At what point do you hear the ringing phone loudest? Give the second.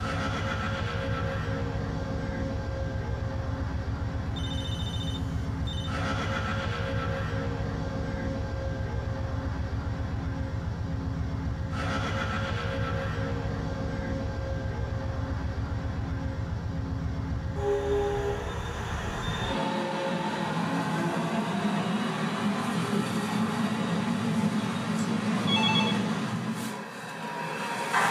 26 s.